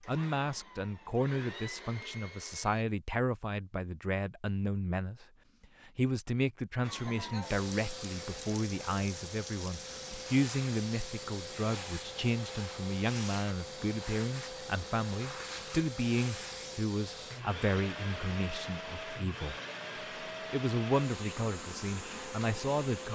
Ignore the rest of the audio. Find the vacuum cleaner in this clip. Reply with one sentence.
The vacuum cleaner can be heard from 0.0 to 2.9 s and from 6.8 to 23.1 s.